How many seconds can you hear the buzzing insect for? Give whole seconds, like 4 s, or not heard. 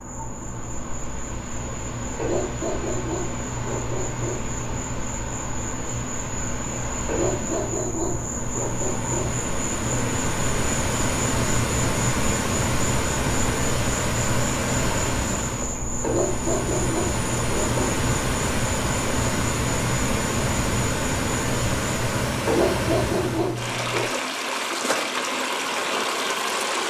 22 s.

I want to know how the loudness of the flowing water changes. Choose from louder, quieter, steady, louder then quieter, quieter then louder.
louder.